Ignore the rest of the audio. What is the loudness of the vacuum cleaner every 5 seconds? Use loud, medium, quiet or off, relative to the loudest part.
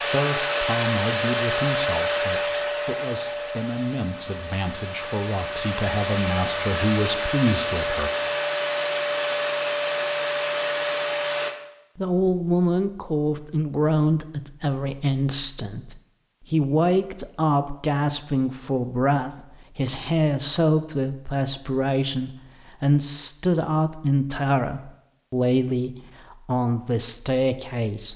loud, loud, loud, off, off, off.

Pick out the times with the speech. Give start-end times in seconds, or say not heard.
0.1-8.1, 11.9-28.1.